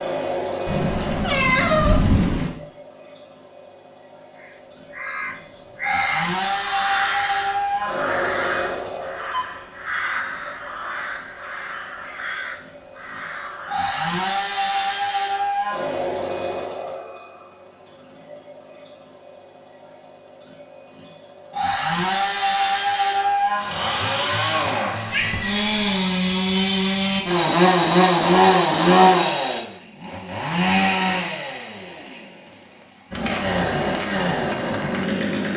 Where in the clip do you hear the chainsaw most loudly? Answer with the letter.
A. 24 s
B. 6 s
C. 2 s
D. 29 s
D.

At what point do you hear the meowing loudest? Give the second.
2 s.